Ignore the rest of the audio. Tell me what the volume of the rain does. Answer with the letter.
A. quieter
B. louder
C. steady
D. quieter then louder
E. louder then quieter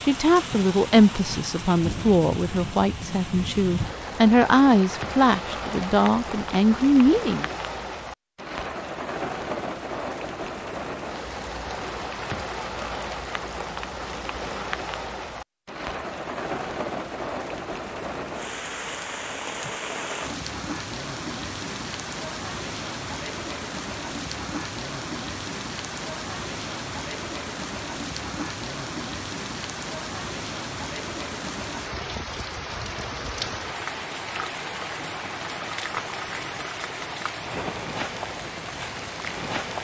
C.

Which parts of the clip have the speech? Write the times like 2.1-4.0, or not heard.
0.0-7.5.